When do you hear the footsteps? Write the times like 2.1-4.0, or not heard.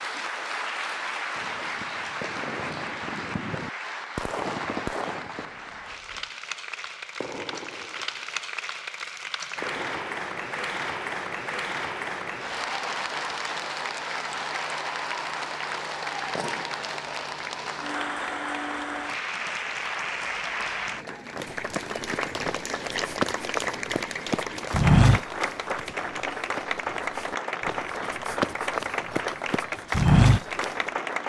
21.4-30.7.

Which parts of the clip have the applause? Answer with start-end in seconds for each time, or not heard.
0.0-31.2.